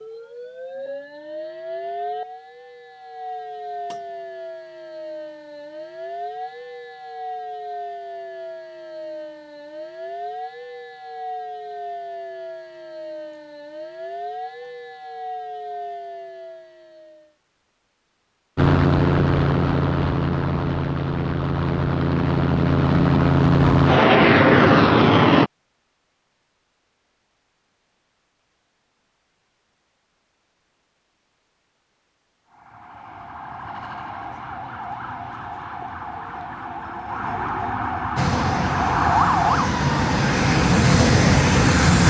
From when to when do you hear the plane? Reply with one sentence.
You can hear the plane from 18.6 to 25.5 s and from 38.1 to 42.0 s.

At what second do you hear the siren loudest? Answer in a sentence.
The volume of the siren peaks at 39 seconds.